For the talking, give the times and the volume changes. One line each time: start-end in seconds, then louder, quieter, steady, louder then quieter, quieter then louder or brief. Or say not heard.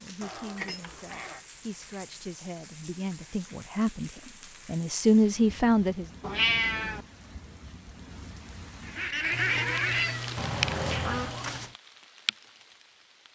0.0-6.0 louder.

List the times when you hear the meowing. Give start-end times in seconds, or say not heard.
0.2-1.4, 6.2-7.0, 9.3-11.8.